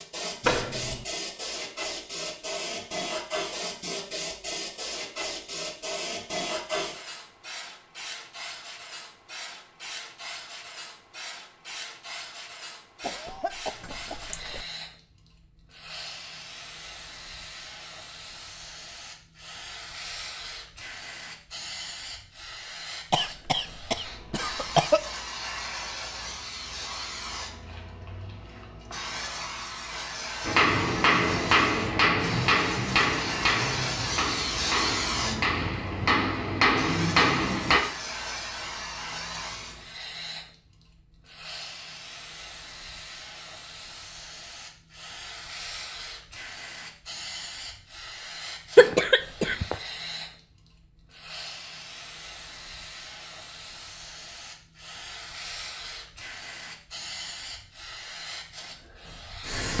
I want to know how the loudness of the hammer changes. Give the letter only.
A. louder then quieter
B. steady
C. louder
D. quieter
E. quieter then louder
E.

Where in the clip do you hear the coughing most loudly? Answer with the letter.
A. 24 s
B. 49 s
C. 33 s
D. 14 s
B.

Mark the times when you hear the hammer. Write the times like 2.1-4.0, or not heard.
30.4-37.8.